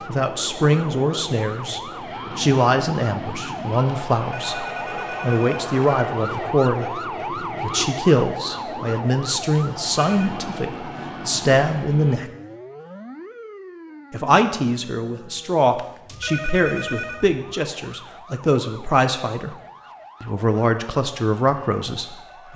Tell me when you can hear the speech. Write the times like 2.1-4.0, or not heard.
0.1-12.3, 14.1-19.6, 20.2-22.5.